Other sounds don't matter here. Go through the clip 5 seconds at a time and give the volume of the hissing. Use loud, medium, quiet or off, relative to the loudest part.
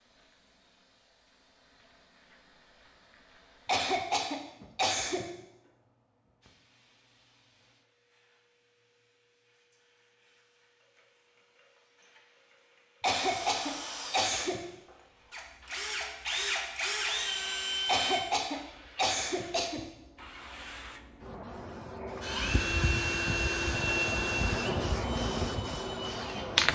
quiet, quiet, quiet, quiet, medium, loud.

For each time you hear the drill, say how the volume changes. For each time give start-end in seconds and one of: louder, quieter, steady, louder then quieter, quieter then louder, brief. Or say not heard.
13.1-18.2 quieter then louder
22.2-26.6 quieter.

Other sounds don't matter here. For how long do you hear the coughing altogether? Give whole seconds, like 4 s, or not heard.
5 s.